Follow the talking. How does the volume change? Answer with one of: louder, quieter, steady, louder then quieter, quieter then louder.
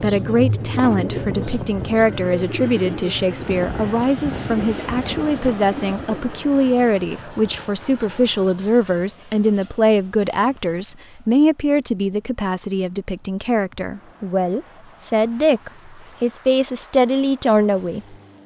steady.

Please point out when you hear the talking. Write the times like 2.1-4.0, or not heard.
0.0-18.1.